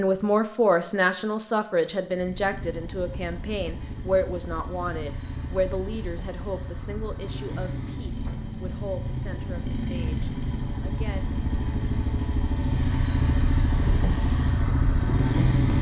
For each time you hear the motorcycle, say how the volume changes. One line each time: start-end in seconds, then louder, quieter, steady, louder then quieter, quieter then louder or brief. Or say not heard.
2.0-15.7 louder.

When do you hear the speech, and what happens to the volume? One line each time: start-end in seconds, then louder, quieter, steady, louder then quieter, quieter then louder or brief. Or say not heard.
0.0-11.2 quieter.